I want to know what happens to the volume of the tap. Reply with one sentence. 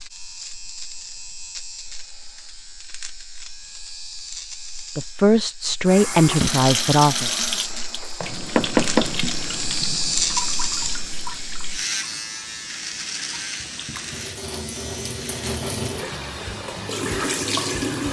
The loudness of the tap goes down, then up.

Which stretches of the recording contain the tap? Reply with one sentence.
The tap can be heard from 5.8 to 18.0 s.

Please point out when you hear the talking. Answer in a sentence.
The talking can be heard from 5.0 to 7.3 s.